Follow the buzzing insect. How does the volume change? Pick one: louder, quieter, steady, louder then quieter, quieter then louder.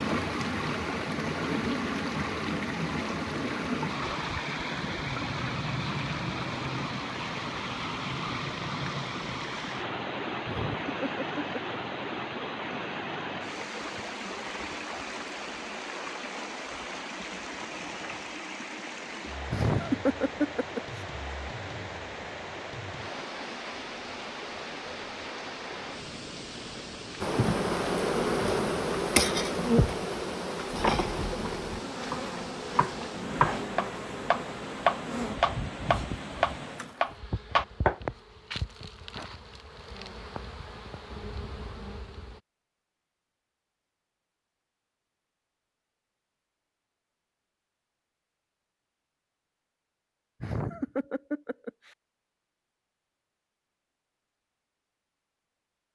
quieter.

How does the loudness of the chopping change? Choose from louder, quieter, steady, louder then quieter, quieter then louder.
louder.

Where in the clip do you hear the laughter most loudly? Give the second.
20 s.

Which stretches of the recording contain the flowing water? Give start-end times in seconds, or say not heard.
0.0-37.0.